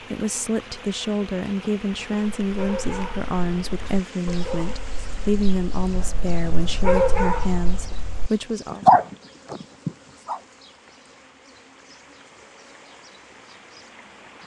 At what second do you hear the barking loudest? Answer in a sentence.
The volume of the barking peaks at 9 seconds.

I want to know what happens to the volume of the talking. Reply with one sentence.
The volume of the talking stays about the same.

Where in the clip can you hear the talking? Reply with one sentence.
The talking can be heard from 0.1 to 8.8 s.